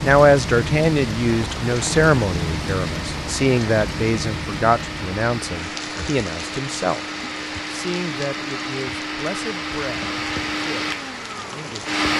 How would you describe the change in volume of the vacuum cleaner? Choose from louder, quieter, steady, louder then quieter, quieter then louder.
louder.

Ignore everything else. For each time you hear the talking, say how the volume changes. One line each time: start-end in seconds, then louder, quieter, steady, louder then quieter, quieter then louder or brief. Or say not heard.
0.0-11.8 quieter.